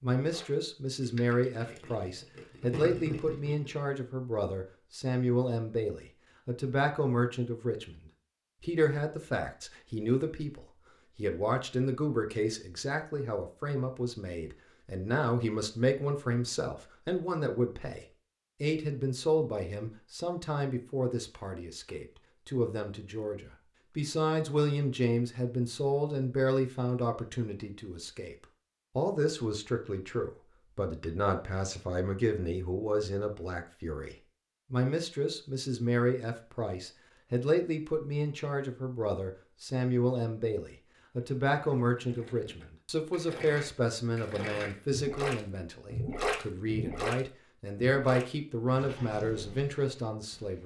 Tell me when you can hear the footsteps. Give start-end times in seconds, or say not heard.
not heard.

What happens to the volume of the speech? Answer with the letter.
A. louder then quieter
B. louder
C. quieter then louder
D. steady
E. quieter
D.